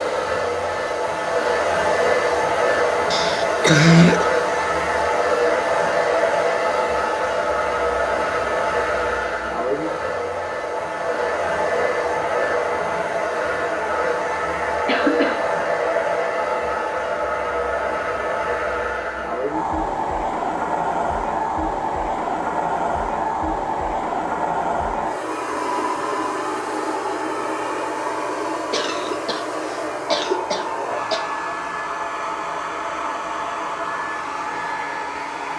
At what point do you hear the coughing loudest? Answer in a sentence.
The loudest moment of the coughing is at 4 seconds.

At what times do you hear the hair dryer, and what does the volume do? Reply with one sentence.
You can hear the hair dryer from 0.0 to 35.5 s, getting quieter.